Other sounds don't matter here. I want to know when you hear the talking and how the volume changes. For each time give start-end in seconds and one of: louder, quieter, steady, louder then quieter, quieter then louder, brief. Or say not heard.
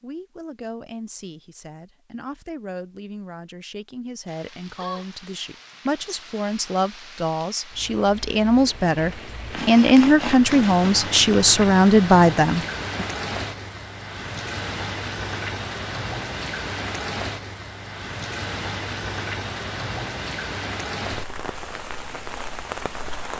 0.0-13.1 louder.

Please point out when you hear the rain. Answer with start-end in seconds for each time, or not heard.
4.2-23.3.